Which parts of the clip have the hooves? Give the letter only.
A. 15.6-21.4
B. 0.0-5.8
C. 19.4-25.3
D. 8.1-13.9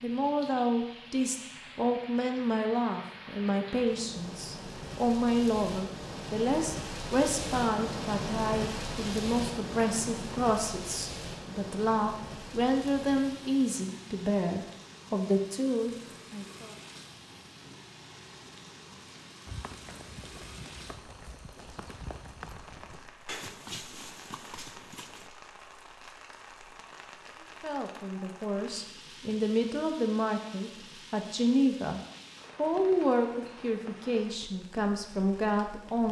C.